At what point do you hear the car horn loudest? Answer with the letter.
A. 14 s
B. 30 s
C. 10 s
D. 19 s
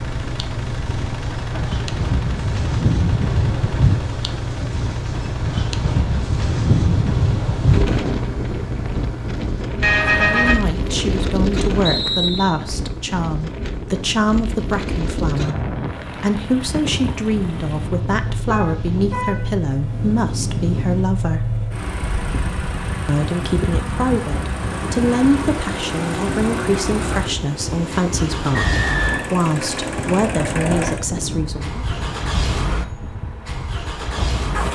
C.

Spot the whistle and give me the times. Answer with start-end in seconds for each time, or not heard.
11.8-12.6, 28.5-29.3.